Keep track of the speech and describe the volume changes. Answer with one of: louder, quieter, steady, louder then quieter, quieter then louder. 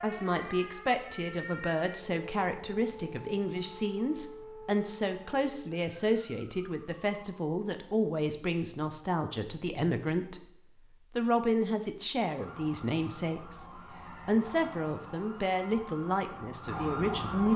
steady.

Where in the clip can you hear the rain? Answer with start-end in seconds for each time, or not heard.
not heard.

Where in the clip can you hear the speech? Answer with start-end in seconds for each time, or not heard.
0.0-10.4, 11.2-17.5.